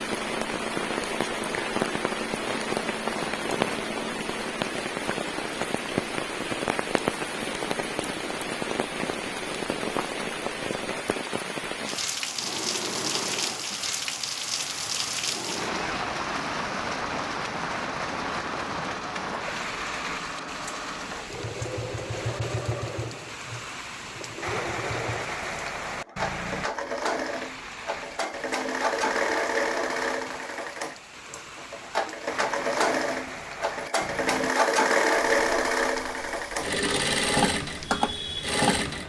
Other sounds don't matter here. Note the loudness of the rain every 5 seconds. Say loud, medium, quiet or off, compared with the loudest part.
loud, loud, loud, loud, medium, medium, medium, quiet.